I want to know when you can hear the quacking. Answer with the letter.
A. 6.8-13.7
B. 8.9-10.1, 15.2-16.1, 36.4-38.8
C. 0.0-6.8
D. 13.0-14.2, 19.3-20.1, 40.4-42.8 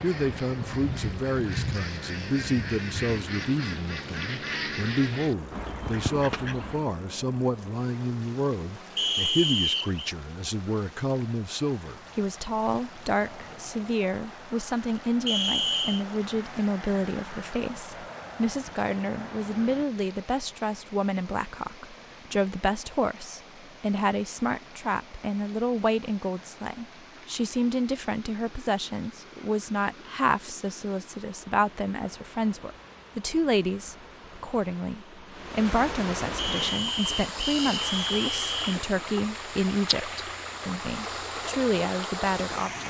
C.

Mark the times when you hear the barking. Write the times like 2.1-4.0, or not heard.
not heard.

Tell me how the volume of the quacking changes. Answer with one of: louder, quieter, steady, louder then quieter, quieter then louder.
steady.